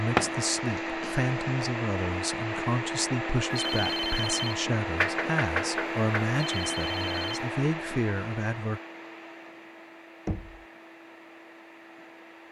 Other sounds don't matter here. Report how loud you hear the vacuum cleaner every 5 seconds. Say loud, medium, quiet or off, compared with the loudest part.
loud, loud, quiet.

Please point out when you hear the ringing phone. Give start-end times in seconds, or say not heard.
3.5-4.6, 6.3-7.5.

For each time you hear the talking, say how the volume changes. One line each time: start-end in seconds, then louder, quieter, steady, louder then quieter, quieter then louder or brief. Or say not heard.
0.0-8.8 steady.